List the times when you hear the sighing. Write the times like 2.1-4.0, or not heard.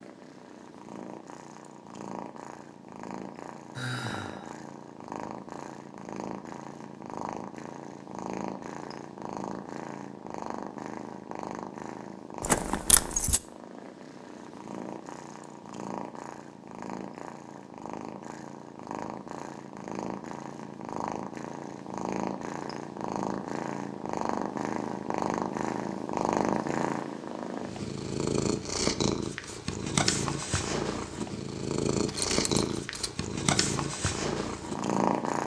3.8-4.5.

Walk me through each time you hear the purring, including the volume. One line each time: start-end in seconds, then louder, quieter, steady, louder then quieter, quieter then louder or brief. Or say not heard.
0.0-35.4 louder.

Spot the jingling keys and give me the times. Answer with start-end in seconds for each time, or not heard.
12.4-13.4, 32.0-33.1.